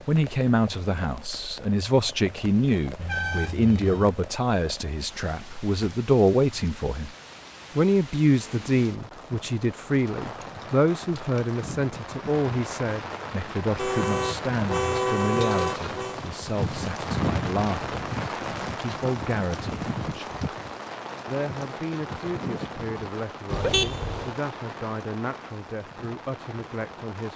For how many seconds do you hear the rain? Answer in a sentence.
You can hear the rain for 27 seconds altogether.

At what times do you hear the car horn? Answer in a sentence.
You can hear the car horn from 3.0 to 4.2 s, from 13.8 to 16.2 s and from 23.5 to 24.4 s.